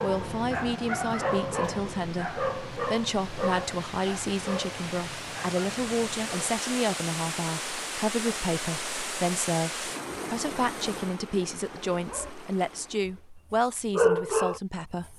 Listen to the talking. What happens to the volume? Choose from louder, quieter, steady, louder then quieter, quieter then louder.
steady.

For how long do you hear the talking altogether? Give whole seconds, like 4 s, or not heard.
15 s.